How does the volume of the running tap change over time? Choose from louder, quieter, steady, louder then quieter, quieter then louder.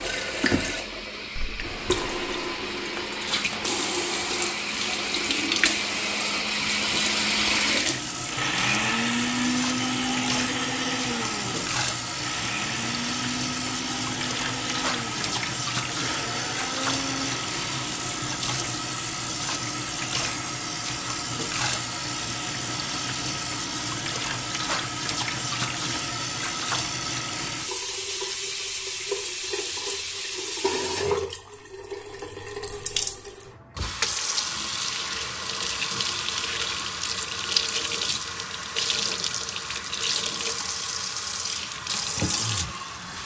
steady.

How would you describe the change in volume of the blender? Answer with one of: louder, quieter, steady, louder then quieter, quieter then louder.
louder then quieter.